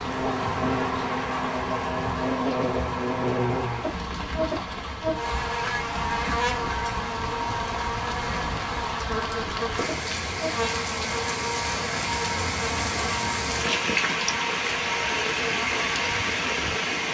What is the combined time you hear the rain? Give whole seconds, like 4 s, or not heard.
17 s.